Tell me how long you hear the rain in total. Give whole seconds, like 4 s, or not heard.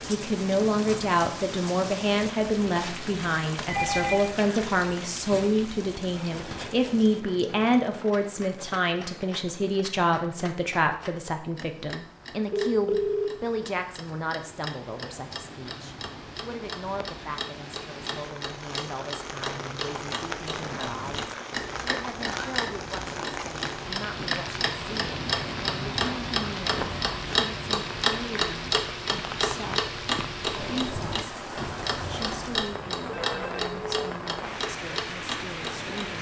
36 s.